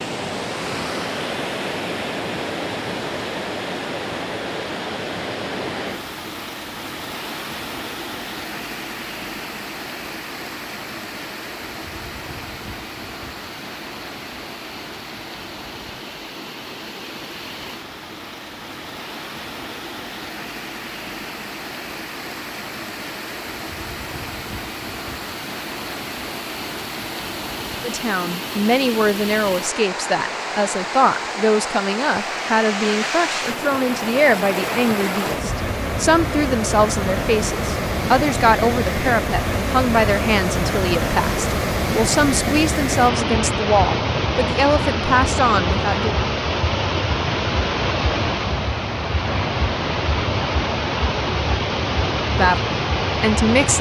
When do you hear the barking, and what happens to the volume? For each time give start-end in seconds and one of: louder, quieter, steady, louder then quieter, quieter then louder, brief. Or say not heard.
not heard.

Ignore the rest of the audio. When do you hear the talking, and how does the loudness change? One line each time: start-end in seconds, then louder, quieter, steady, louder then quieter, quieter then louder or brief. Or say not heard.
27.8-46.1 steady
52.2-53.7 brief.